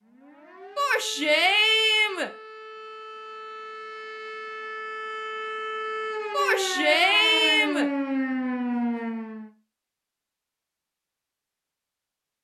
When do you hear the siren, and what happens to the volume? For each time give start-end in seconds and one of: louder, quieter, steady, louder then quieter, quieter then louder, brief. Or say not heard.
0.0-9.5 louder.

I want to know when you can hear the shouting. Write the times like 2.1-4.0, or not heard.
0.8-2.3, 6.3-7.9.